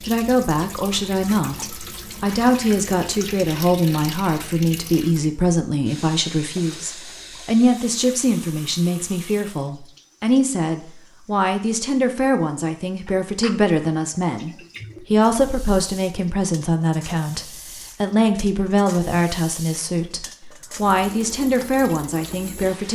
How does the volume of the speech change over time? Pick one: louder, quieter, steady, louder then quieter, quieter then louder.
steady.